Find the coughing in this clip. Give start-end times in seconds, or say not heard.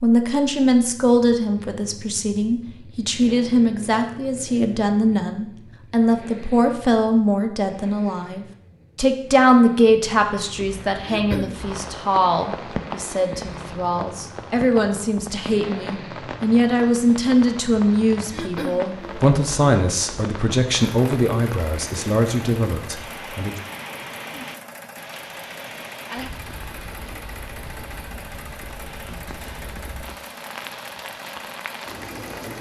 11.1-11.6, 18.3-18.9.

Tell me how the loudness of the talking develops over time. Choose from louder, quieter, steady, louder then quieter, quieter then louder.
steady.